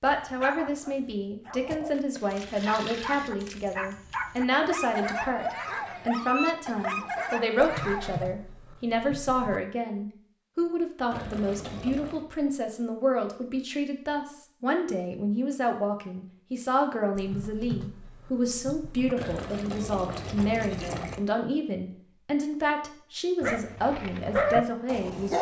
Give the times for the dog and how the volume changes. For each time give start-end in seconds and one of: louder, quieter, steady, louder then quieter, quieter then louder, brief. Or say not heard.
0.1-8.3 louder
23.4-25.3 brief.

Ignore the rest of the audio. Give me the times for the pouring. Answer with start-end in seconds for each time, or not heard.
2.1-3.4, 11.1-12.2, 19.1-21.2.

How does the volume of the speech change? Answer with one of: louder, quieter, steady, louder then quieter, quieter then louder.
steady.